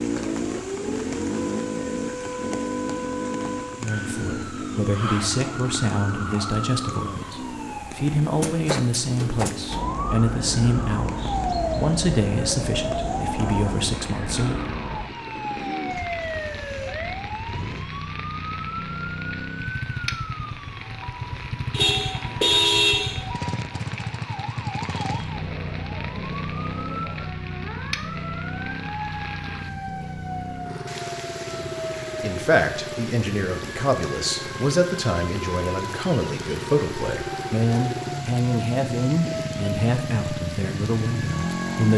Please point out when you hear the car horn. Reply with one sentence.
The car horn can be heard from 21.7 to 23.2 s.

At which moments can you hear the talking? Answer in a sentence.
You can hear the talking from 3.8 to 14.7 s and from 32.2 to 41.9 s.